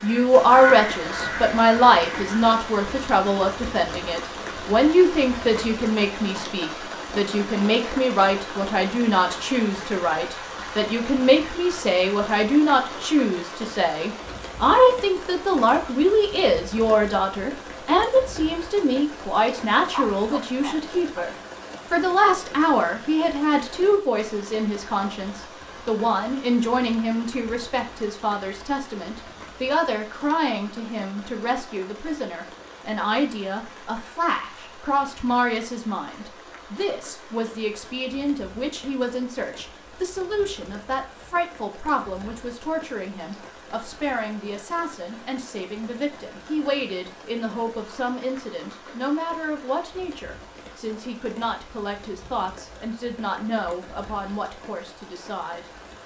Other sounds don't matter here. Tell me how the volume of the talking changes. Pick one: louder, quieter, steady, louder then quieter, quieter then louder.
quieter.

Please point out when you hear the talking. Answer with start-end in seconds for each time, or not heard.
0.0-56.0.